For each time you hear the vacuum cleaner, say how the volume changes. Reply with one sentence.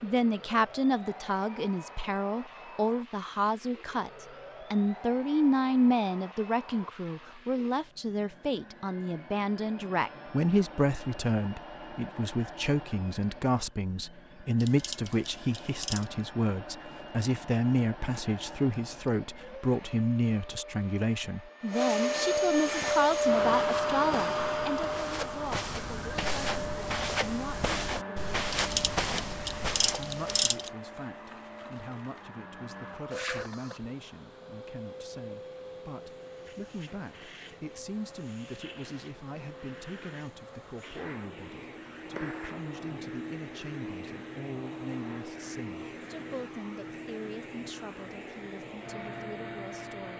The vacuum cleaner can be heard from 0.0 to 50.1 s, getting louder then quieter.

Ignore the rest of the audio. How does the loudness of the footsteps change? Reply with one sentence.
The volume of the footsteps goes up.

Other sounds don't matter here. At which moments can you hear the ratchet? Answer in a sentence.
The ratchet can be heard from 14.6 to 16.1 s and from 28.5 to 30.7 s.